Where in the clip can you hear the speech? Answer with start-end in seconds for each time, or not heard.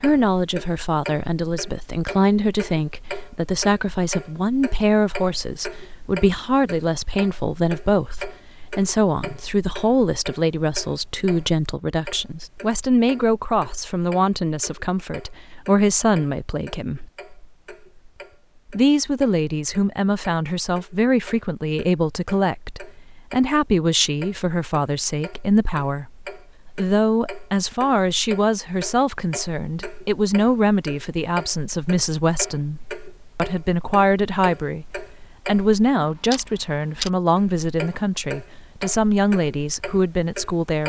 0.0-17.1, 18.7-34.9, 35.5-40.8.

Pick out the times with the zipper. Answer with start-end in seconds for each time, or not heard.
not heard.